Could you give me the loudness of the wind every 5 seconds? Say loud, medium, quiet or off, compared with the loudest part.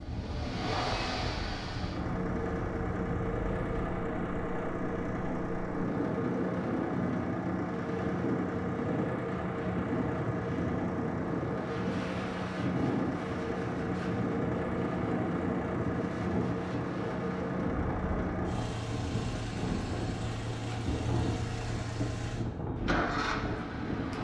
medium, loud, loud, loud, loud.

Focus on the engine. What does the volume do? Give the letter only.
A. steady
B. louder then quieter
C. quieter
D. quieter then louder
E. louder
A.